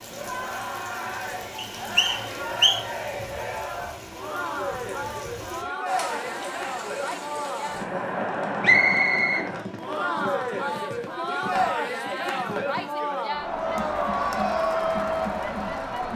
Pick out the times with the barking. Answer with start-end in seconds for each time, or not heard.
not heard.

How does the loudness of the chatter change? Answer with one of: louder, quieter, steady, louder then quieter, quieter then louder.
louder.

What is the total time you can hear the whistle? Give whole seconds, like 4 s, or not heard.
2 s.